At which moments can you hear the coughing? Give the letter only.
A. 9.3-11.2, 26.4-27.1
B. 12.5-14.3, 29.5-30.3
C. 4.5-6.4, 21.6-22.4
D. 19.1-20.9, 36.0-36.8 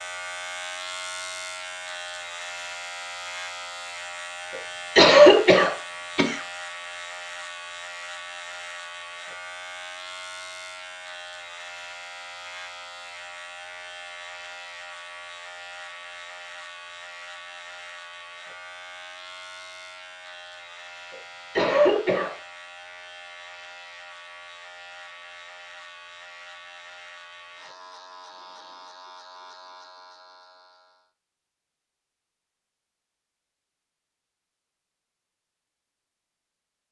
C.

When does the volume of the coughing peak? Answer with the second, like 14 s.
5 s.